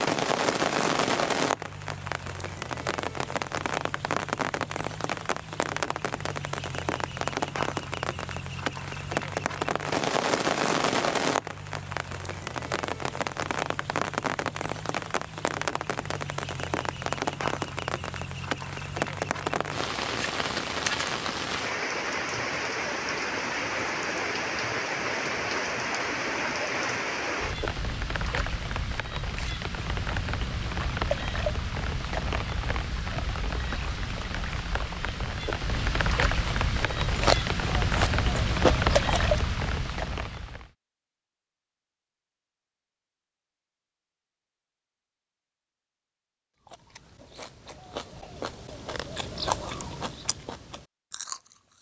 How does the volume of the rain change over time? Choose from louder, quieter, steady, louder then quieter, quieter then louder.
steady.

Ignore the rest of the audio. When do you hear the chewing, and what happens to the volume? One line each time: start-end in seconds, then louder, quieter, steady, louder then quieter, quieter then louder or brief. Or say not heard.
36.6-39.4 brief
46.6-51.7 louder then quieter.